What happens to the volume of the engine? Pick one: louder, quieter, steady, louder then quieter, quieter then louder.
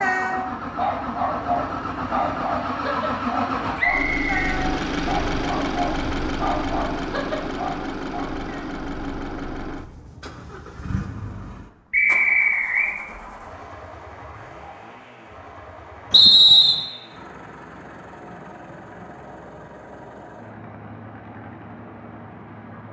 quieter.